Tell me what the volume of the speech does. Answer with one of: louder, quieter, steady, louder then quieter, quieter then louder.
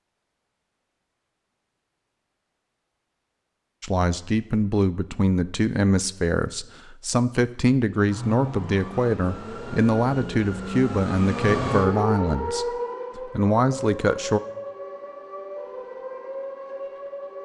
steady.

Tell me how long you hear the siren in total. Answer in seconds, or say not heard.
9 s.